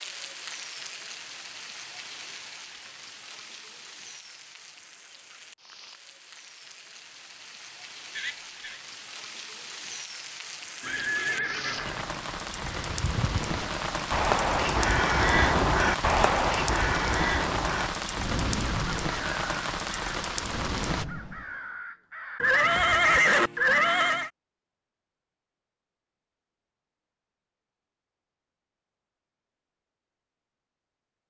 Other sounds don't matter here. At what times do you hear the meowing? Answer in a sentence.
You can't hear the meowing here.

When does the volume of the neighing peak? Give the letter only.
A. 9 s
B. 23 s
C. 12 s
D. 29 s
B.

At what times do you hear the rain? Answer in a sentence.
The rain can be heard from 0.0 to 21.1 s.